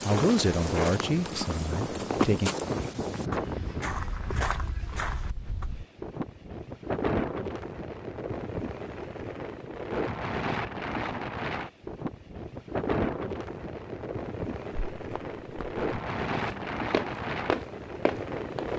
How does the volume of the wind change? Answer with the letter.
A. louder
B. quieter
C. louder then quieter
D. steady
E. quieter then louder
D.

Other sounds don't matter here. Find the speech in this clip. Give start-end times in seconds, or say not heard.
0.0-2.5.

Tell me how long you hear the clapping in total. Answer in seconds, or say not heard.
not heard.